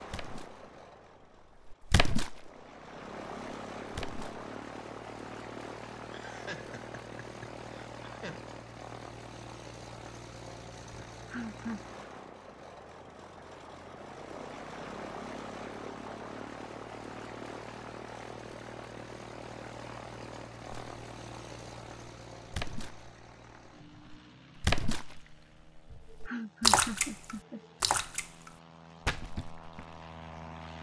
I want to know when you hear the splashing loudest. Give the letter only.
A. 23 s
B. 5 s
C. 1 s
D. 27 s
D.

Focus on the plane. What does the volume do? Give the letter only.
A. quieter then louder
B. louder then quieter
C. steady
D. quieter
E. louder
D.